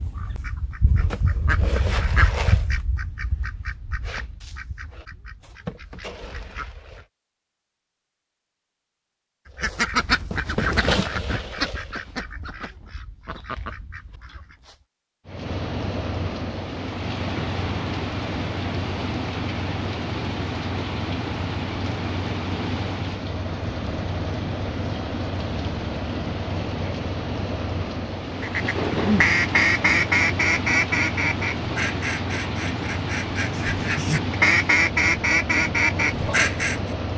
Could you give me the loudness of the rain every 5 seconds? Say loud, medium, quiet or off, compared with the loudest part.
off, off, off, loud, loud, loud, loud, loud.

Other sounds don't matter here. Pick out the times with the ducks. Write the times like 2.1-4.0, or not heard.
0.0-7.0, 9.6-14.8, 28.4-36.8.